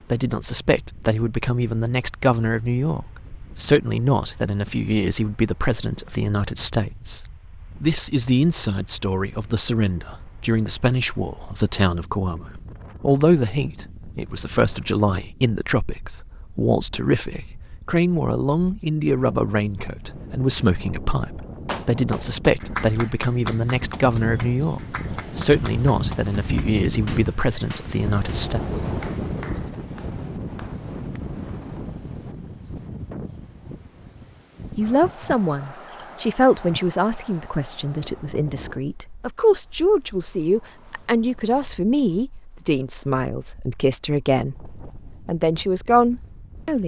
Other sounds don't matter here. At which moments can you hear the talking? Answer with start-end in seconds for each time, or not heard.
0.1-7.2, 7.8-28.6, 34.8-46.8.